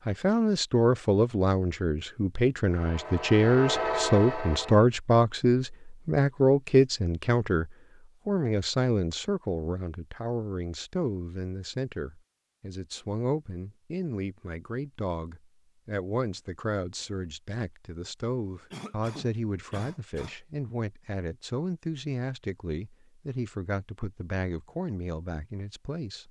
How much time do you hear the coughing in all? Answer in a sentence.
You can hear the coughing for 2 seconds altogether.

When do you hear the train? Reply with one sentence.
You can hear the train from 2.6 to 4.9 s.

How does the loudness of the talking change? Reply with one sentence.
The volume of the talking goes down.